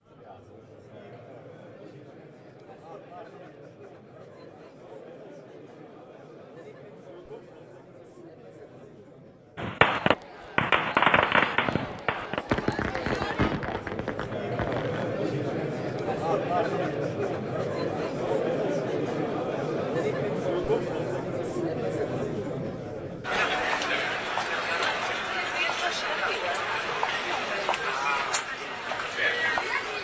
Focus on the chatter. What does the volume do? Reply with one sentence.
The volume of the chatter goes up.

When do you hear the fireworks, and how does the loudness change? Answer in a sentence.
You can hear the fireworks from 9.6 to 15.1 s, getting quieter.